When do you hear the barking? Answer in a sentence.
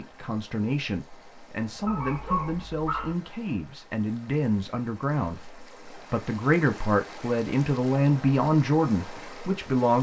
You can hear the barking from 1.9 to 3.1 s.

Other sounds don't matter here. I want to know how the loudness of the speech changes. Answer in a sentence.
The volume of the speech goes up.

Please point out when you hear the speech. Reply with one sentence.
You can hear the speech from 0.0 to 9.9 s.